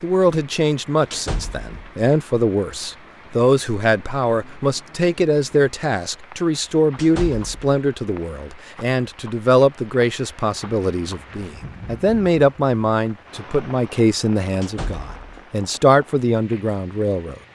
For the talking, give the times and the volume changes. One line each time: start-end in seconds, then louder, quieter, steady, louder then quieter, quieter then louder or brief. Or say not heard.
0.0-17.4 steady.